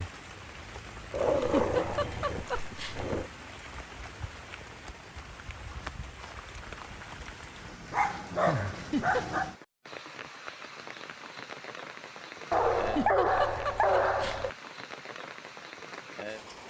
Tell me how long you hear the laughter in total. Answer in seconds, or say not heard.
4 s.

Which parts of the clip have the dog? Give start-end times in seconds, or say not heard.
1.1-3.3, 7.9-9.6, 12.5-14.5.